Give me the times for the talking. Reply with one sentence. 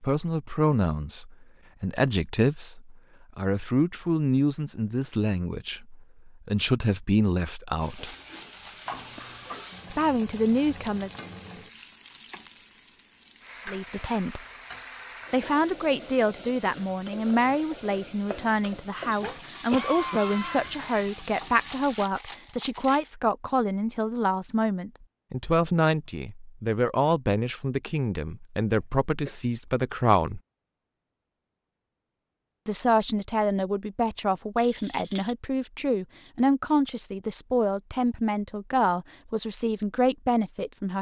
The talking can be heard from 0.0 to 8.1 s, from 9.9 to 11.2 s, from 13.7 to 14.4 s, from 15.3 to 30.4 s and from 32.6 to 40.9 s.